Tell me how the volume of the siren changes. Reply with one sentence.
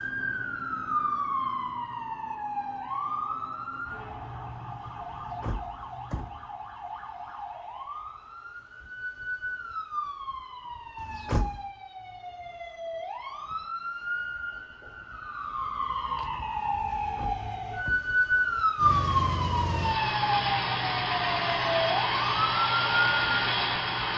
The loudness of the siren goes down, then up.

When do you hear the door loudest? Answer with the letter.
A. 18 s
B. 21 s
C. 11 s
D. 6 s
C.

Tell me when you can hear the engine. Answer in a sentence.
You can hear the engine from 18.8 to 24.1 s.